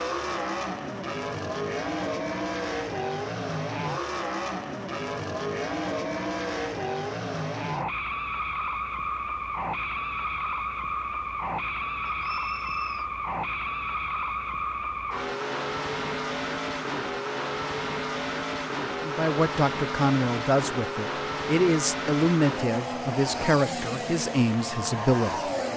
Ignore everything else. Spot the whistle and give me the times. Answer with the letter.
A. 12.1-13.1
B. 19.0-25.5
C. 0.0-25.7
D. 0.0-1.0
A.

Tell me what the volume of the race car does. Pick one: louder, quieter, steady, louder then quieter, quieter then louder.
steady.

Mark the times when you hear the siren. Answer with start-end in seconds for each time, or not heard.
not heard.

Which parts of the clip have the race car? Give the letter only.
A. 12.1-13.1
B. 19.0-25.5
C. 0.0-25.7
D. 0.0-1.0
C.